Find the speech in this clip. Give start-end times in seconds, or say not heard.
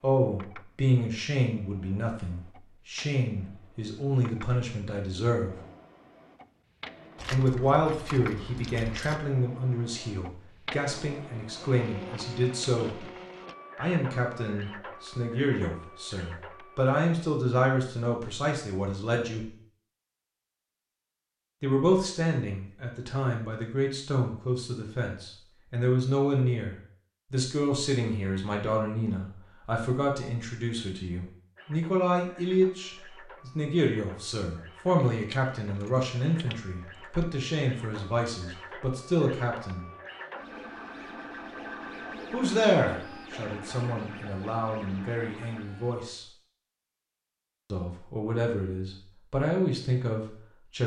0.0-5.5, 7.2-13.1, 13.8-19.5, 21.6-39.9, 42.3-46.2, 47.7-50.8.